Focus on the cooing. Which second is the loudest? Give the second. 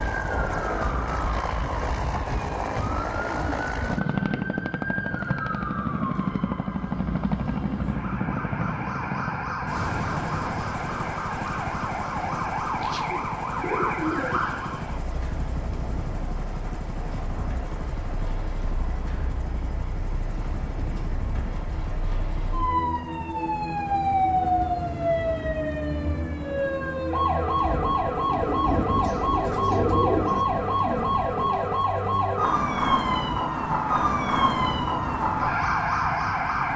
30 s.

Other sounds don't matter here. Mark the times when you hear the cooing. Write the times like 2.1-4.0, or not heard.
2.9-4.3, 12.8-14.4, 28.4-30.4.